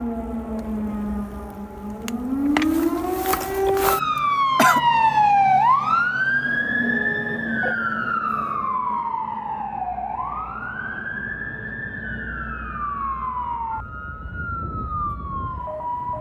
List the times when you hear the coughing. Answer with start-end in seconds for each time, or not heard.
4.2-4.8.